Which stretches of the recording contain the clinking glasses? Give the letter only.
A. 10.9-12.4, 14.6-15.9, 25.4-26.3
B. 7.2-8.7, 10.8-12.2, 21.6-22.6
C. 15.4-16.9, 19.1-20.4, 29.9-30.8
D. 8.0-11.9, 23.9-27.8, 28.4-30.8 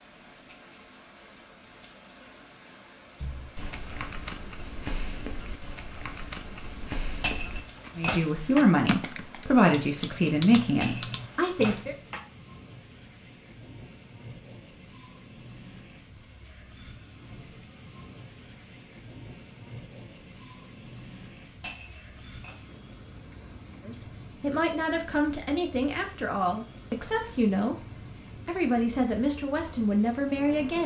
B.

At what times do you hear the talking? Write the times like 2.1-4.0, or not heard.
8.0-11.9, 23.9-27.8, 28.4-30.8.